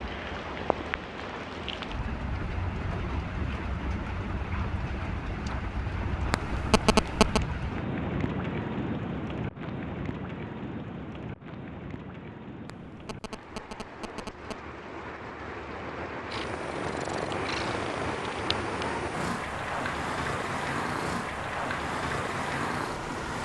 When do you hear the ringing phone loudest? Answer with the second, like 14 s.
7 s.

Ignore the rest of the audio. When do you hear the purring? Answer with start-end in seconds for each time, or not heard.
16.3-23.4.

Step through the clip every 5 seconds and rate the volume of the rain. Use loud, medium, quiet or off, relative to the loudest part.
loud, loud, medium, loud, loud.